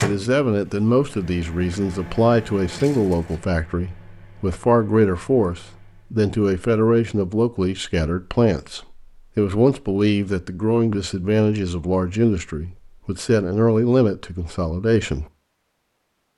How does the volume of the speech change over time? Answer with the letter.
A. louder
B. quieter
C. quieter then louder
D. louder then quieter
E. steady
E.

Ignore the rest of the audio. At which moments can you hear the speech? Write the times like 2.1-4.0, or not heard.
0.0-15.2.